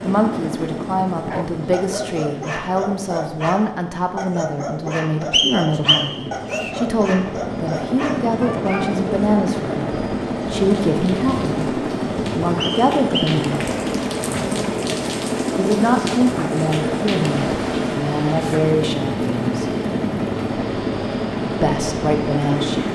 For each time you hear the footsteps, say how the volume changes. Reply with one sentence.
You can't hear the footsteps here.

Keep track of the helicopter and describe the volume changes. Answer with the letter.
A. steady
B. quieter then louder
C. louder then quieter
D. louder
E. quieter
D.